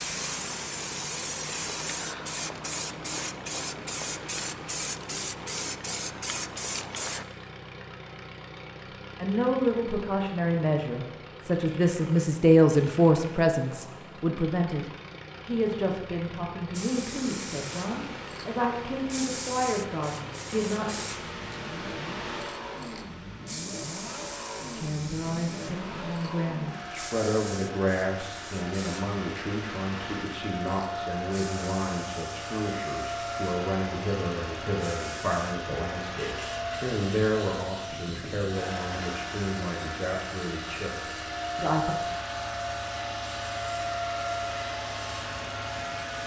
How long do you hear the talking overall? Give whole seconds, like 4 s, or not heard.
29 s.